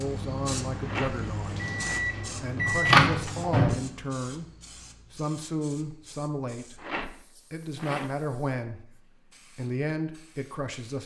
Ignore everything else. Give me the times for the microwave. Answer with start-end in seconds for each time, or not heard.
0.0-3.8.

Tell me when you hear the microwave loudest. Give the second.
3 s.